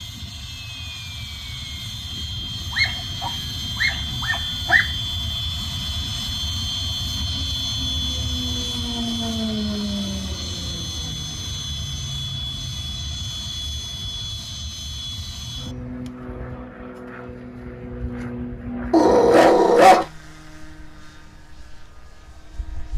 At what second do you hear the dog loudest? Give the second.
20 s.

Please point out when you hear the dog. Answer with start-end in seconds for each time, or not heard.
2.7-4.9, 18.9-20.1.